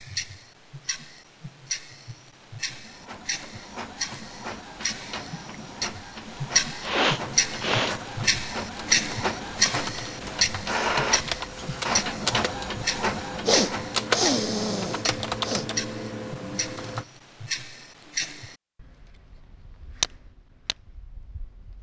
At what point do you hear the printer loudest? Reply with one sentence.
The loudest moment of the printer is at 11 seconds.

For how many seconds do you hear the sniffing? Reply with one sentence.
The sniffing can be heard for 3 seconds in total.